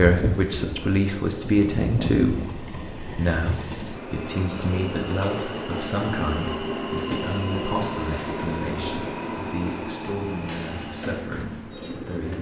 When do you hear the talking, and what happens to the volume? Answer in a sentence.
You can hear the talking from 0.0 to 12.3 s, getting quieter.